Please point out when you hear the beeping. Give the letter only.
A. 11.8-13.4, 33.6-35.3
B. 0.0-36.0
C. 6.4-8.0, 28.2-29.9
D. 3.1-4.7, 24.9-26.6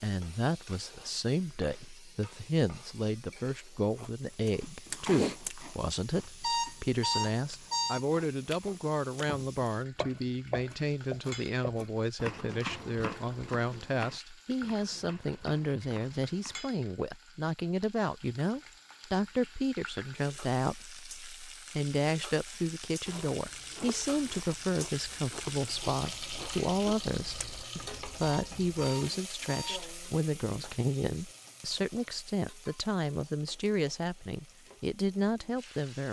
C.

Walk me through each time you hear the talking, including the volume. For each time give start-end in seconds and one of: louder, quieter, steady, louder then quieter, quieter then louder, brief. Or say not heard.
0.0-36.0 steady.